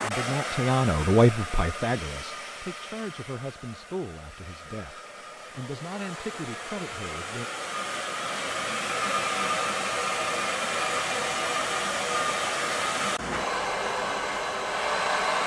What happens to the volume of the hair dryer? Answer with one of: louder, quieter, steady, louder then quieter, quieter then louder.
quieter then louder.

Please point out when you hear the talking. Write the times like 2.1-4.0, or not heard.
0.0-7.5.